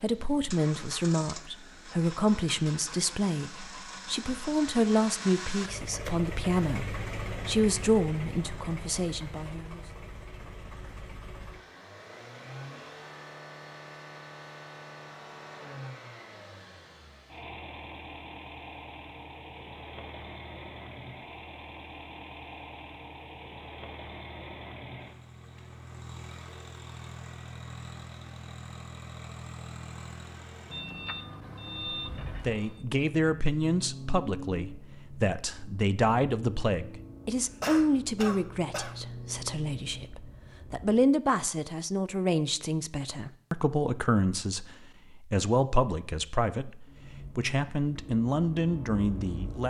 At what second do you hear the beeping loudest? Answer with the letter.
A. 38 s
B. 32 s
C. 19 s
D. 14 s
B.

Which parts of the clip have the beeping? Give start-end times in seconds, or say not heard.
30.7-32.9.